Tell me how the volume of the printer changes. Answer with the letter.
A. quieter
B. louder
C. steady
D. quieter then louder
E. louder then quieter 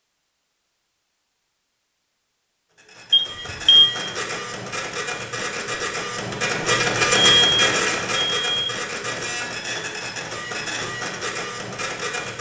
E.